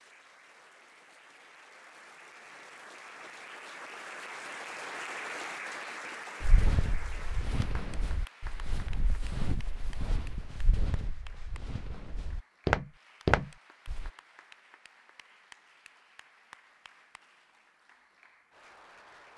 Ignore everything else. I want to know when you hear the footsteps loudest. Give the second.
13 s.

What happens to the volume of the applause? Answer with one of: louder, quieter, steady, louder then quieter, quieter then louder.
louder then quieter.